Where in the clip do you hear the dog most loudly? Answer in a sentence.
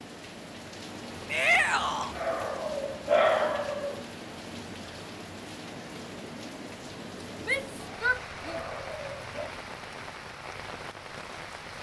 The volume of the dog peaks at 3 seconds.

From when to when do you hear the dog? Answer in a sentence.
The dog can be heard from 1.5 to 4.0 s and from 7.8 to 9.5 s.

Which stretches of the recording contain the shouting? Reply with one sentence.
You can hear the shouting from 1.2 to 2.1 s and from 7.4 to 8.6 s.